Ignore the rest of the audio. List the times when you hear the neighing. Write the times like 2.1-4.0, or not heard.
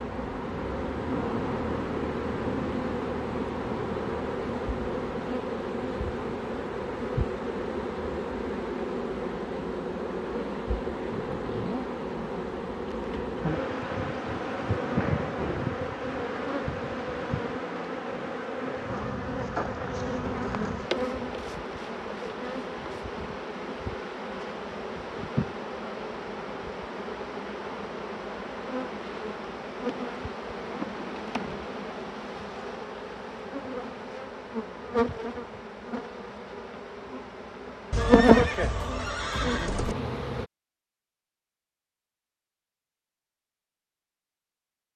37.9-40.0.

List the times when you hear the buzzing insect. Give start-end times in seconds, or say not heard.
0.0-40.5.